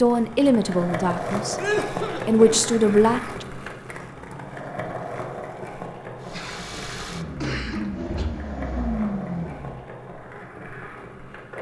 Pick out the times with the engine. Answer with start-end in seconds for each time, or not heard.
6.2-9.9.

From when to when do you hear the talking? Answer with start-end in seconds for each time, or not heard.
0.0-3.5.